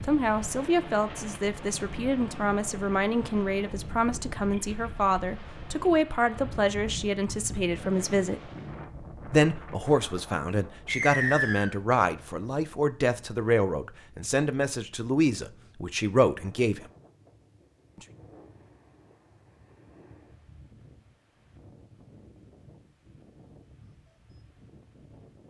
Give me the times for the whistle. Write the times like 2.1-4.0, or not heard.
10.8-11.8.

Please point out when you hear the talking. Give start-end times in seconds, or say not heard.
0.0-8.4, 9.2-16.8.